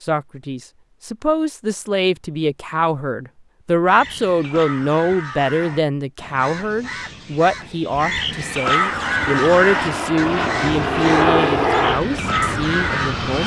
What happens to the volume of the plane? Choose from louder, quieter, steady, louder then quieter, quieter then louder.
louder then quieter.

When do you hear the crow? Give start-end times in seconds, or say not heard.
3.9-13.2.